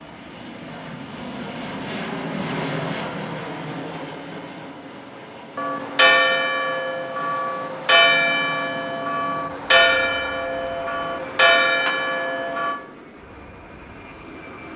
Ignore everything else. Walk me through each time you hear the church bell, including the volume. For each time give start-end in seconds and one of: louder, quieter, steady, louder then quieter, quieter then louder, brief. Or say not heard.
5.5-12.8 steady.